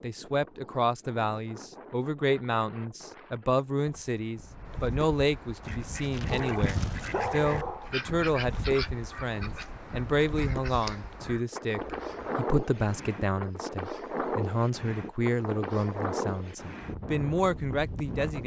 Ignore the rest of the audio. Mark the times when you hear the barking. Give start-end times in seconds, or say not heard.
6.3-8.0.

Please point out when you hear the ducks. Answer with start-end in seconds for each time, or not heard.
5.6-12.4.